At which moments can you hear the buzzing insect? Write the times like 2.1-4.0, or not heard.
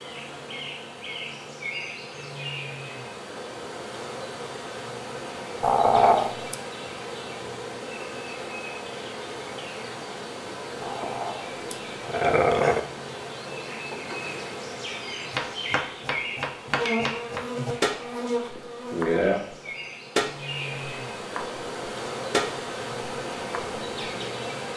0.0-24.7.